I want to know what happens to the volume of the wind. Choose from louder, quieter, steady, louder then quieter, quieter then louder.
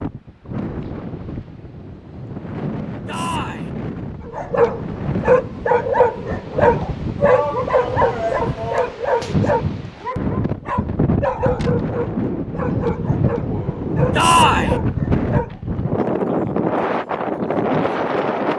louder.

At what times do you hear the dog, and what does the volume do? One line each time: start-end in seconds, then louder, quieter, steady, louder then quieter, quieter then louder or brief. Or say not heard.
4.2-15.6 quieter.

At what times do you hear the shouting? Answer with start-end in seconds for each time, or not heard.
3.0-3.7, 7.2-8.9, 14.1-14.8.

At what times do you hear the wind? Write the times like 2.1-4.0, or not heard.
0.0-18.5.